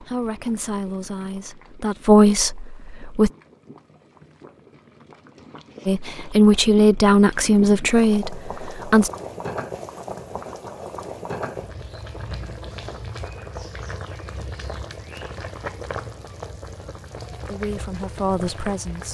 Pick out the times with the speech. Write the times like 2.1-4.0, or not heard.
0.0-3.3, 5.8-9.1, 17.4-19.0.